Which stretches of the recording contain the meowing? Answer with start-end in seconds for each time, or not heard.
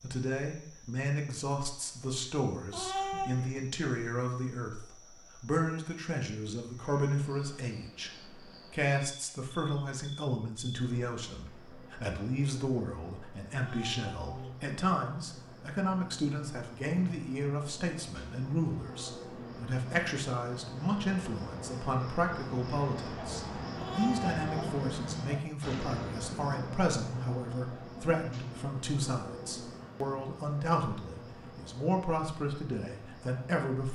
2.7-3.5, 13.6-14.6, 23.8-24.8.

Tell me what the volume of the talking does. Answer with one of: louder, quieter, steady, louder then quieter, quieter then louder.
steady.